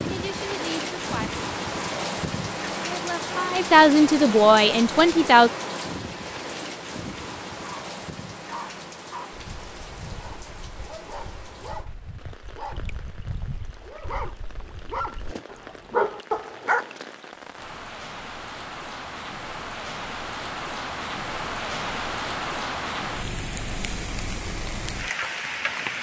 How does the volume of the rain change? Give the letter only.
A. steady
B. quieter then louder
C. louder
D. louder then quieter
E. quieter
B.